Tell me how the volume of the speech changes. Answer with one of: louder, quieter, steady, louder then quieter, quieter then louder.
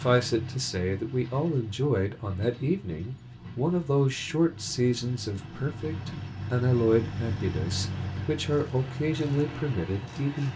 steady.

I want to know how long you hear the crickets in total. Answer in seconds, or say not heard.
not heard.